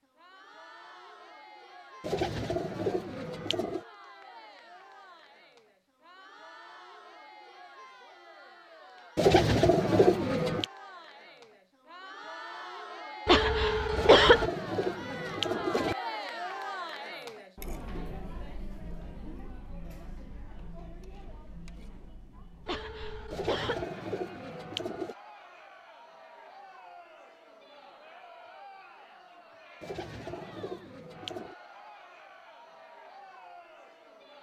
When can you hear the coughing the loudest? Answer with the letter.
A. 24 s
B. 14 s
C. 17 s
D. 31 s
B.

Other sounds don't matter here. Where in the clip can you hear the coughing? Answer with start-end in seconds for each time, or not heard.
13.2-14.5, 22.6-23.9.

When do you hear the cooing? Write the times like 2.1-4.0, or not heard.
2.0-3.8, 9.2-10.7, 13.9-15.9, 23.3-25.1, 29.8-31.6.